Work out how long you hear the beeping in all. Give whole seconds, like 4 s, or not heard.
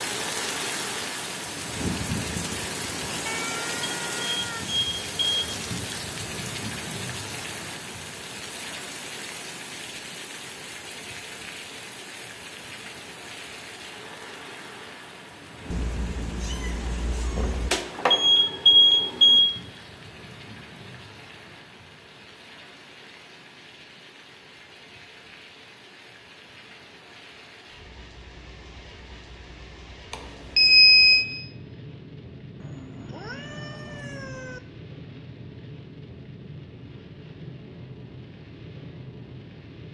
5 s.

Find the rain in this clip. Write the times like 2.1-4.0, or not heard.
0.0-39.8.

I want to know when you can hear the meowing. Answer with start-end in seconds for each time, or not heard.
3.2-4.7, 15.7-17.7, 32.6-34.6.